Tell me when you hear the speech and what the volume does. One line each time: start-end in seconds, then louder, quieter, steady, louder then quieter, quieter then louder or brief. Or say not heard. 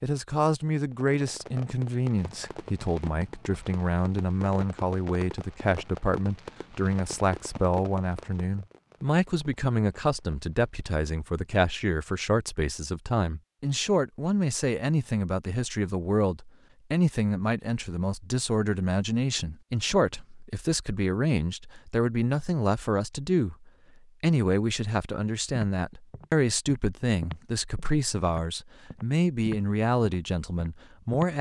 0.0-31.3 steady.